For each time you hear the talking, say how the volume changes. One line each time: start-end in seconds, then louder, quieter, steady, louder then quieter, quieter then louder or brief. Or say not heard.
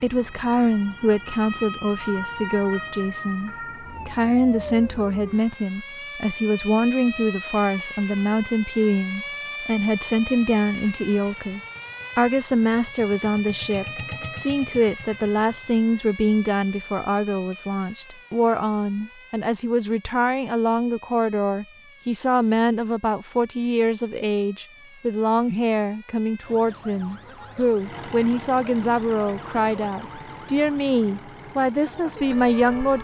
0.0-32.9 steady.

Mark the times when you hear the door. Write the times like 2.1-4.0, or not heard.
not heard.